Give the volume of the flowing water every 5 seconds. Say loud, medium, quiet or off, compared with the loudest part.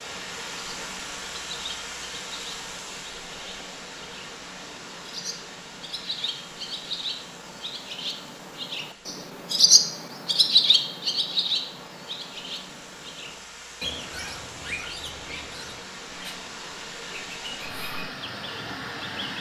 loud, medium, medium, loud.